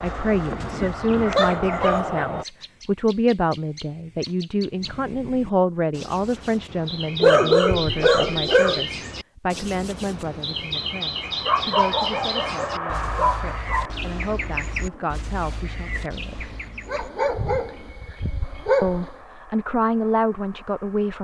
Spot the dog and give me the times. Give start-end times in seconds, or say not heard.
0.3-2.2, 7.2-8.8, 11.4-13.9, 16.4-19.1.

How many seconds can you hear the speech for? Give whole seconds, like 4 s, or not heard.
19 s.